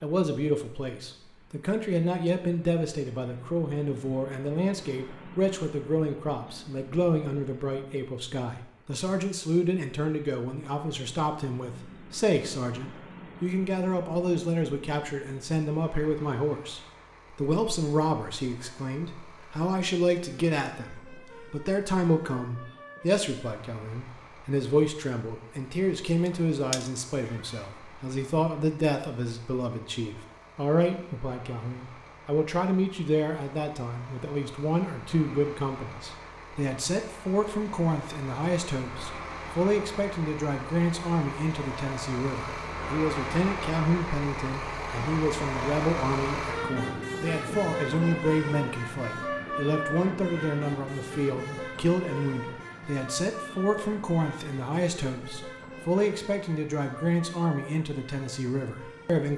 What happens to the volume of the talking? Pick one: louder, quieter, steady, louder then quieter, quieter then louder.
steady.